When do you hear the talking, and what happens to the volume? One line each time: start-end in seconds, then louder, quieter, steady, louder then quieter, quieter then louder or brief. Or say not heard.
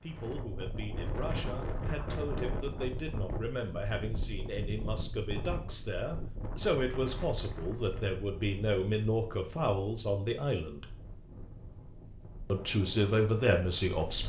0.0-10.8 louder
12.5-14.2 brief.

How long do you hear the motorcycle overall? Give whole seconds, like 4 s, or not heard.
not heard.